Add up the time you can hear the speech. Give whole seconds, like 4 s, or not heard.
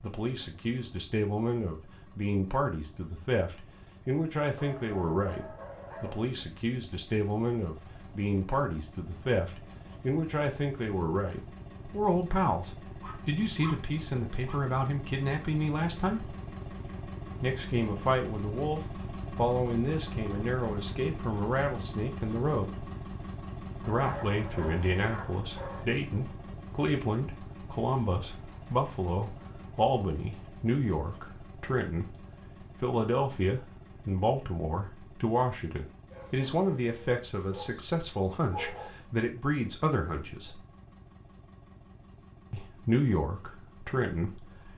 40 s.